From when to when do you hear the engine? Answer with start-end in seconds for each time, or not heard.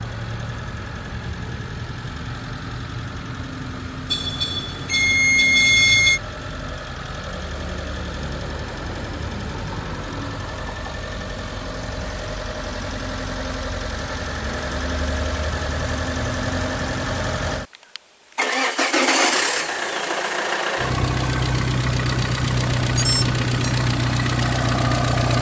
0.0-25.3.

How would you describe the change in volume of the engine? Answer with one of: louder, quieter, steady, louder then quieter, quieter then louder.
louder.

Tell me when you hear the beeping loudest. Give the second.
6 s.